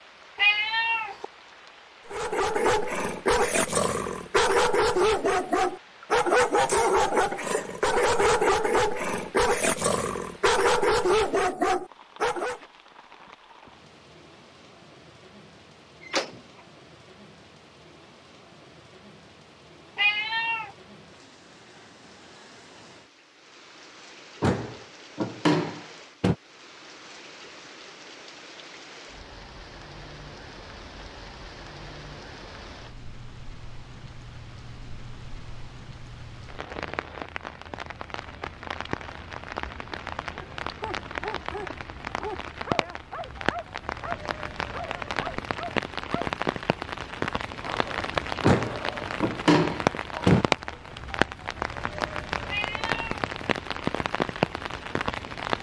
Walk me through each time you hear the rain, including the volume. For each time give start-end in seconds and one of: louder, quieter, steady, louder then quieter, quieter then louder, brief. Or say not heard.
0.0-55.5 louder.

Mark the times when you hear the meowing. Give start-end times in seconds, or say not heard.
0.3-1.2, 19.9-20.7, 52.5-53.2.